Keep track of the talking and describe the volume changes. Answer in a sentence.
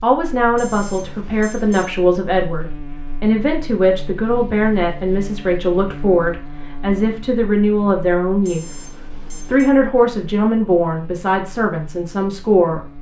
The volume of the talking stays about the same.